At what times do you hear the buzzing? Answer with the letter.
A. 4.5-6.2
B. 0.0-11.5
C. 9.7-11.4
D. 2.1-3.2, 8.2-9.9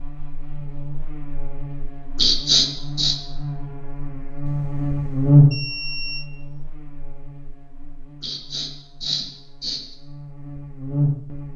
B.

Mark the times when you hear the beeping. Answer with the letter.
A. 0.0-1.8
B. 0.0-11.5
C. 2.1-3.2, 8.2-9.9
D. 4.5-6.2
D.